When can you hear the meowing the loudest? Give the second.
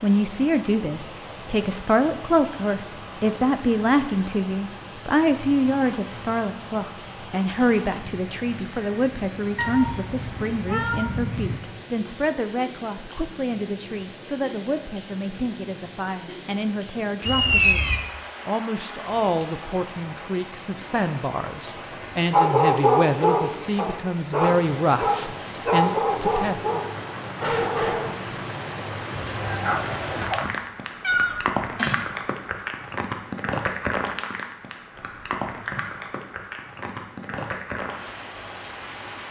18 s.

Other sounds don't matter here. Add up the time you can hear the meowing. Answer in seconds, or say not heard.
4 s.